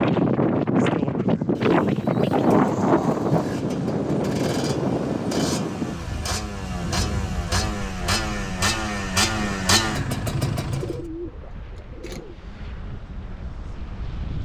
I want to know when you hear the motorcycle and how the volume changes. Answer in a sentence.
The motorcycle can be heard from 3.3 to 11.0 s, getting louder.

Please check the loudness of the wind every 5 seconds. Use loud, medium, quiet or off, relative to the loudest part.
loud, medium, quiet.